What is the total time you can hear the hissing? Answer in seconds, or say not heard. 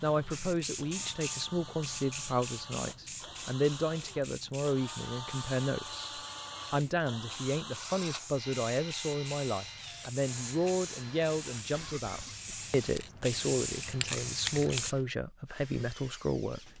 15 s.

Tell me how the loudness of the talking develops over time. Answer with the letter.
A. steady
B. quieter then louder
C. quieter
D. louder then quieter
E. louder
A.